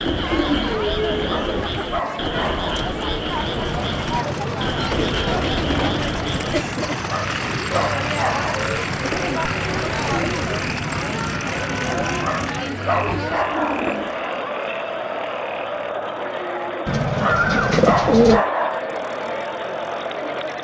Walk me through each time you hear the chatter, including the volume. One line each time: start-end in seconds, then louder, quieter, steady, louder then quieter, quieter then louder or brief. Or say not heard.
0.0-20.5 steady.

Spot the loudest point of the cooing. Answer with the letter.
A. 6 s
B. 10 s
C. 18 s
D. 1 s
C.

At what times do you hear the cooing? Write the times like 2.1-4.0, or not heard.
0.1-1.9, 4.9-6.0, 8.9-10.5, 12.9-14.2, 16.9-18.4.